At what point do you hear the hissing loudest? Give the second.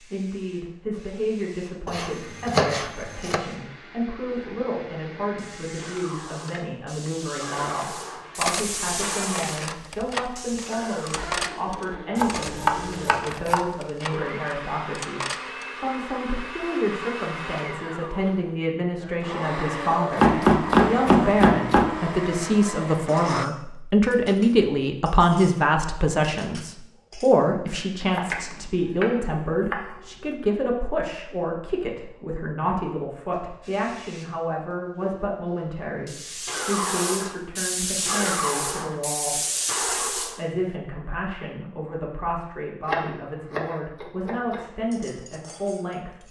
38 s.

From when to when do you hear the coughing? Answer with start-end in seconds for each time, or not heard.
not heard.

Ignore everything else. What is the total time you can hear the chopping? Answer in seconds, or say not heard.
8 s.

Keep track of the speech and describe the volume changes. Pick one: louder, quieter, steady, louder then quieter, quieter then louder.
louder then quieter.